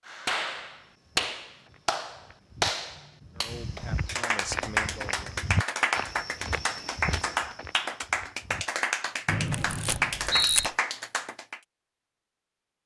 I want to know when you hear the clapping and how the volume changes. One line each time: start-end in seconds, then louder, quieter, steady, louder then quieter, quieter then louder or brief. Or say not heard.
0.1-11.6 steady.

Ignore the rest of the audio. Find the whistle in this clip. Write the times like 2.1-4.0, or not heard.
9.2-10.7.